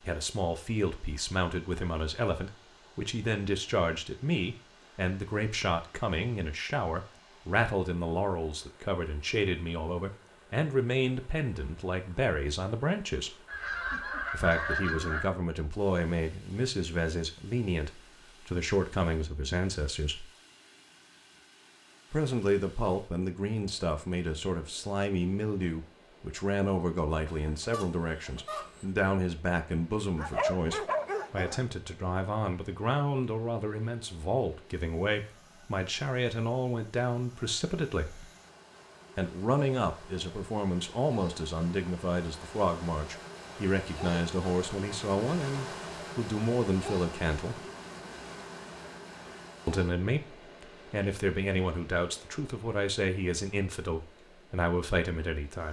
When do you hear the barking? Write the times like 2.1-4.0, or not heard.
30.1-31.6.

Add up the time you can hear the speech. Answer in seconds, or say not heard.
50 s.